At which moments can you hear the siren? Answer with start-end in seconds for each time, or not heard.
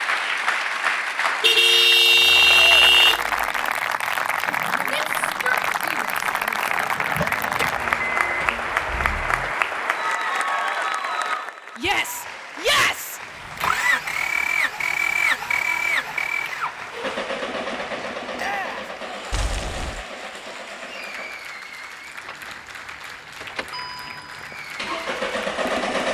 not heard.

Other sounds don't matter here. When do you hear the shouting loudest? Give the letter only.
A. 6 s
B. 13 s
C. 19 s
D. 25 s
B.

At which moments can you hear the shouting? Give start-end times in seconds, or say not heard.
4.8-6.6, 11.8-13.2, 18.4-18.9.